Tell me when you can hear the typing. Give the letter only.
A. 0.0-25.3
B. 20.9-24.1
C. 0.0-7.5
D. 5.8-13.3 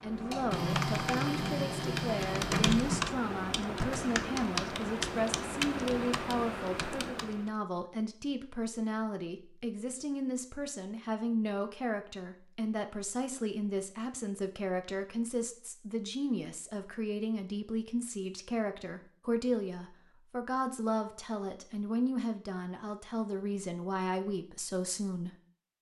C.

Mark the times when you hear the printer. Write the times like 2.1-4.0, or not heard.
0.0-3.1.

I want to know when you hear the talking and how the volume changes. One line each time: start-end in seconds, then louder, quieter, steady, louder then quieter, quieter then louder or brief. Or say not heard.
0.0-25.3 steady.